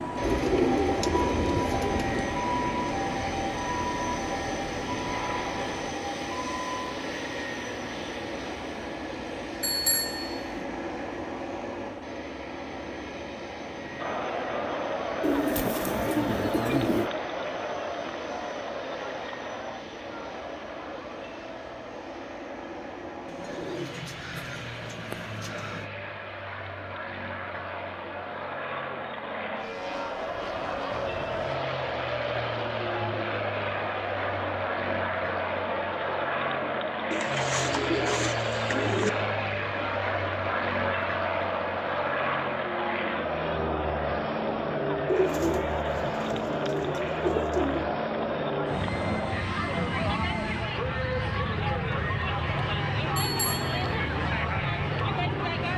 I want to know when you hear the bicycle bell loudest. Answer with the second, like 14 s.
10 s.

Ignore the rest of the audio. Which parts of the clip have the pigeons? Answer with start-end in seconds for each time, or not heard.
0.2-2.2, 15.2-17.1, 23.2-25.9, 37.1-39.1, 45.0-47.9.